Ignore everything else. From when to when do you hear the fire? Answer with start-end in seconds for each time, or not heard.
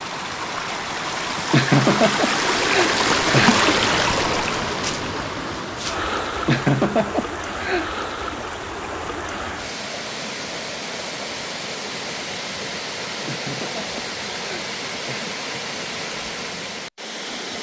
not heard.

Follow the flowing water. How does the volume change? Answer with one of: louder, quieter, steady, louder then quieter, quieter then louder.
quieter.